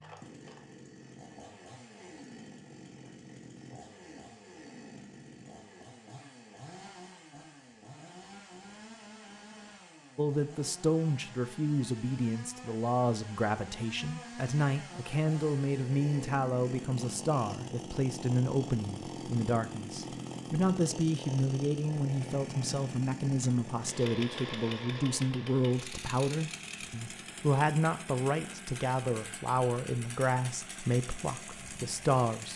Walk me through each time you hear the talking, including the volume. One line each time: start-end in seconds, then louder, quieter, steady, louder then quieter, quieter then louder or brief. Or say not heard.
10.2-32.5 steady.